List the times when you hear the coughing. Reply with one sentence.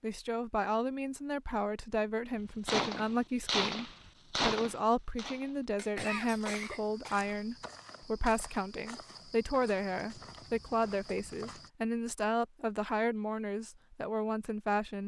The coughing can be heard from 5.8 to 7.2 s.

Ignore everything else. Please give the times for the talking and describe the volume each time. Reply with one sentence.
You can hear the talking from 0.0 to 15.0 s, at a steady volume.